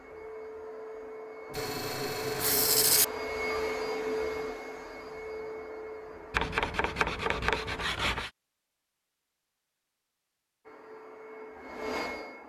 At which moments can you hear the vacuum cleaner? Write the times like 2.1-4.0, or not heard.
0.0-7.9, 10.7-12.4.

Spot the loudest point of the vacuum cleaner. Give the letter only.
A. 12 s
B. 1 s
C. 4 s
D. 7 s
C.